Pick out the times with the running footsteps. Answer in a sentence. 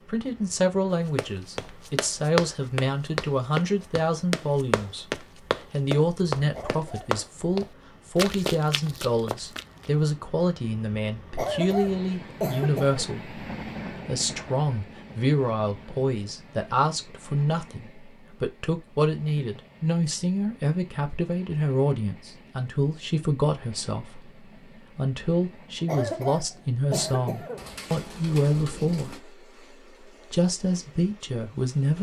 You can hear the running footsteps from 1.1 to 9.9 s.